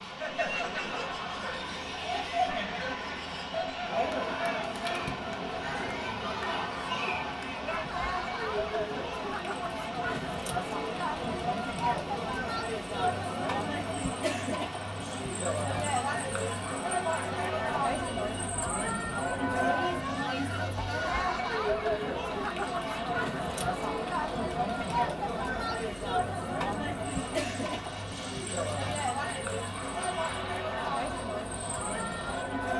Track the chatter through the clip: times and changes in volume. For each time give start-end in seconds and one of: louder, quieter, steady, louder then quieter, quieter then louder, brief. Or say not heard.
0.0-32.7 steady.